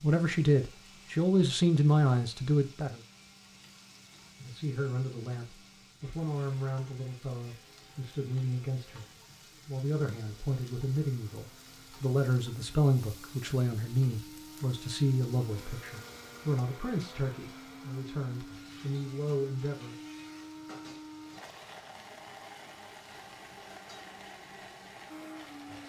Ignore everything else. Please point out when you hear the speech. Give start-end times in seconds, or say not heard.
0.0-3.0, 4.4-19.9.